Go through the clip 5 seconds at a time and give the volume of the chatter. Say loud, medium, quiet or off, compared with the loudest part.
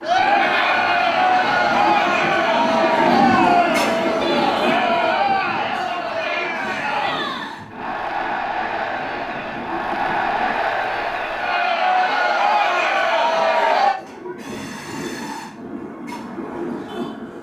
loud, medium, loud, off.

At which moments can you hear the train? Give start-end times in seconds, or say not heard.
0.0-10.6, 13.9-17.3.